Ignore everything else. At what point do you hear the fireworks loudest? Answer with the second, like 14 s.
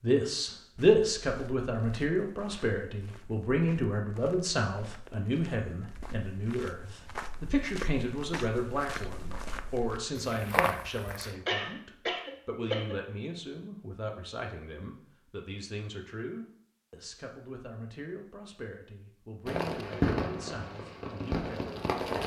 20 s.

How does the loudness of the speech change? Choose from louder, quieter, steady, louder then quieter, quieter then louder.
quieter.